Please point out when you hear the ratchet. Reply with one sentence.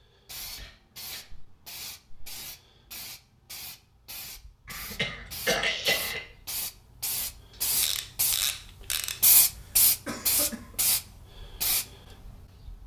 You can hear the ratchet from 7.8 to 9.3 s.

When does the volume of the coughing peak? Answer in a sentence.
The volume of the coughing peaks at 6 seconds.